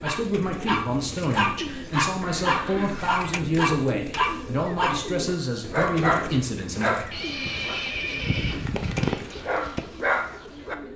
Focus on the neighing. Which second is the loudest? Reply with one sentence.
The loudest moment of the neighing is at 8 seconds.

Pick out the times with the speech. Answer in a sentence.
You can hear the speech from 0.0 to 7.0 s.